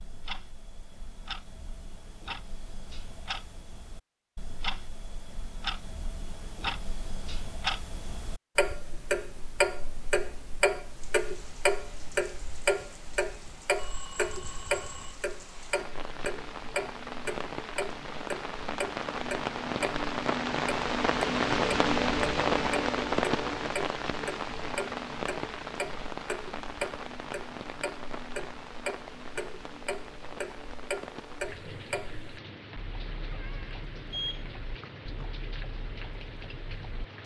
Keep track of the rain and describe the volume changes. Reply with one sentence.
The loudness of the rain goes up, then down.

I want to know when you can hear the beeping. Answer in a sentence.
You can hear the beeping from 13.8 to 15.2 s and from 34.1 to 35.3 s.